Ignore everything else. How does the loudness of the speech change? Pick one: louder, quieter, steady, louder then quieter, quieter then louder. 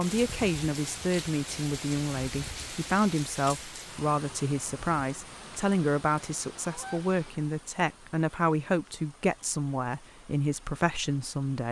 steady.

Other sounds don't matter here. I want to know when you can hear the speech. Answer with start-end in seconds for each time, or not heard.
0.0-11.6.